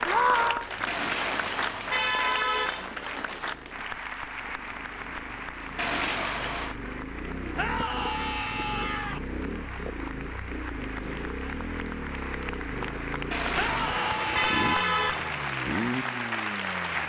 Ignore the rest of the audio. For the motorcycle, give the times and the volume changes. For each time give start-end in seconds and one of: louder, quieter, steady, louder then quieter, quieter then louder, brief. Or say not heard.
0.2-17.0 louder.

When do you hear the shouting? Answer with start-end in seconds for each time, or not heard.
0.1-0.7, 7.5-9.2, 13.6-15.2.